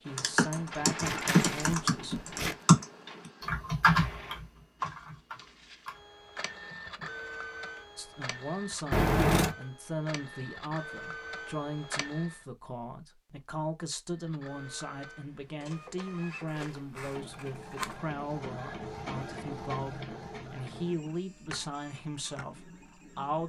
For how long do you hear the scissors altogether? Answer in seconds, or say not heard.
4 s.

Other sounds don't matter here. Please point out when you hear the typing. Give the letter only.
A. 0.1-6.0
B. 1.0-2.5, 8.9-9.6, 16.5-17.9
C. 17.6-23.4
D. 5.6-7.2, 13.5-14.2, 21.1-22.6
A.